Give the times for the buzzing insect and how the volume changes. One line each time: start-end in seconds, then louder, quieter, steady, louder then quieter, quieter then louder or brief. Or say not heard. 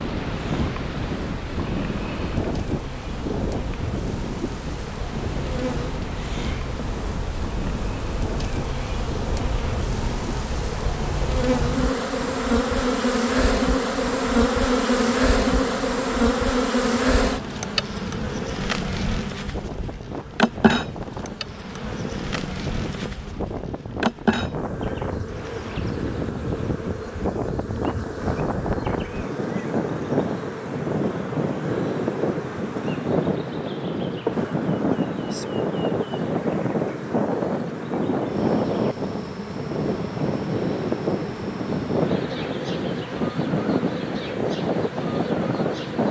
0.0-46.0 louder then quieter.